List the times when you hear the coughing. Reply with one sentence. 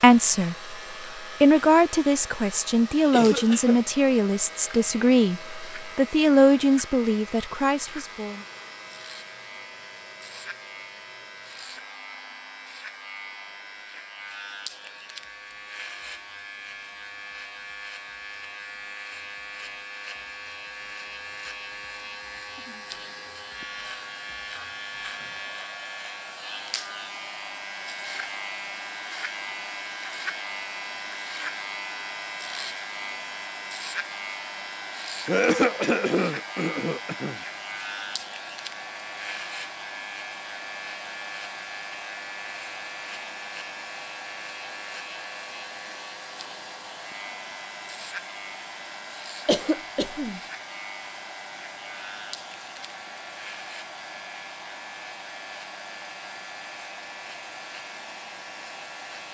You can hear the coughing from 3.1 to 3.8 s, from 35.2 to 37.4 s and from 49.5 to 50.4 s.